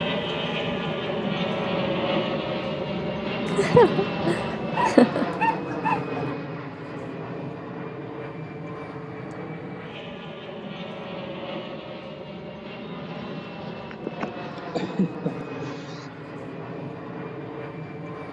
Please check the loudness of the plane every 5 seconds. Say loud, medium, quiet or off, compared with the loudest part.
loud, medium, medium, medium.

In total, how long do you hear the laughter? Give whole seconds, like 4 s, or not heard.
4 s.